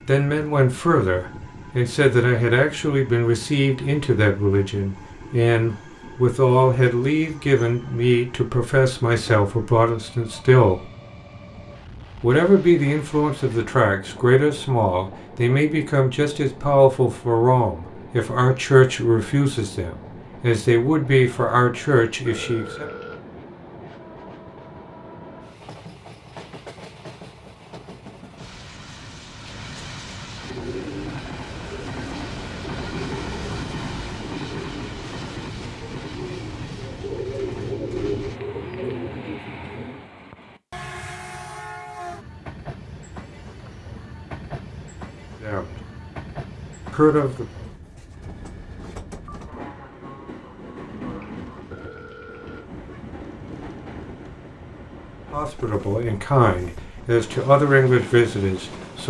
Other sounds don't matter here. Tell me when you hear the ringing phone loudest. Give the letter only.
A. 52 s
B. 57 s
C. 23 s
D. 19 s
C.